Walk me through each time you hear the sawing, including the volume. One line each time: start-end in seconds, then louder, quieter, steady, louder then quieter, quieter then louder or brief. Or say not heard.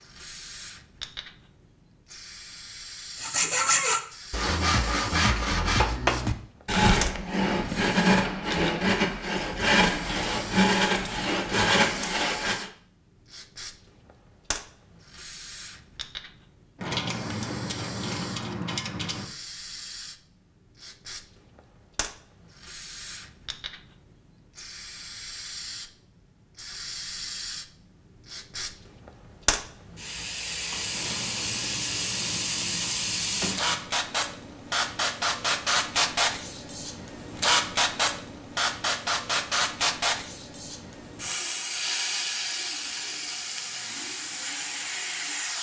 3.1-12.7 steady.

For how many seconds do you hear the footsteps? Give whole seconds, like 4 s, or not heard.
not heard.